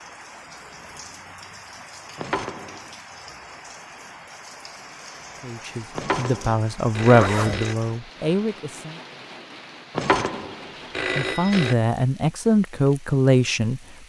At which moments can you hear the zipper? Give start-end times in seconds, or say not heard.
7.1-7.6.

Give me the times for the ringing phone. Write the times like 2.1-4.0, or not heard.
2.1-2.9, 6.0-7.8, 9.9-11.8.